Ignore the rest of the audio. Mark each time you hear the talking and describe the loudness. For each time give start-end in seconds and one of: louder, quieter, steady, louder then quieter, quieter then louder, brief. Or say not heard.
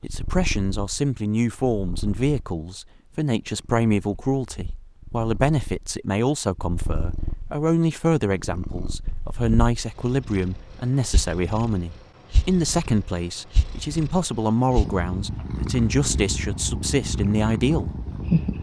0.0-17.9 steady.